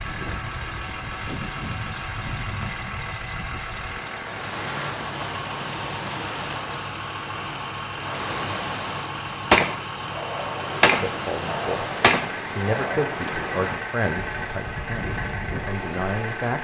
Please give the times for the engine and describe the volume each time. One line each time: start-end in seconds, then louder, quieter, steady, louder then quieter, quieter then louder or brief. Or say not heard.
0.0-16.5 steady.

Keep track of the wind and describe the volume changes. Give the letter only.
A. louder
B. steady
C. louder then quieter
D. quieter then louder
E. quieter
B.